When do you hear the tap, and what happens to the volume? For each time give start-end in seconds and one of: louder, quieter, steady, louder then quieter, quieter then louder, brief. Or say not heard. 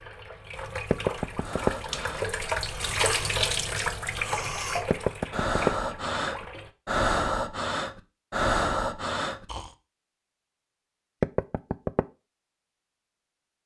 0.0-6.7 louder then quieter.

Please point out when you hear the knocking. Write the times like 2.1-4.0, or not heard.
0.9-1.7, 4.9-5.7, 11.2-12.1.